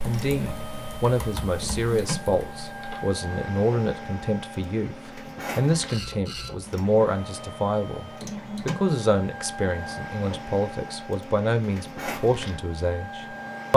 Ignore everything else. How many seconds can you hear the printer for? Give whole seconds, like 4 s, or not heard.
14 s.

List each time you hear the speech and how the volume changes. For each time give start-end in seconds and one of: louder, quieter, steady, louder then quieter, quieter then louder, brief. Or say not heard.
0.0-13.7 steady.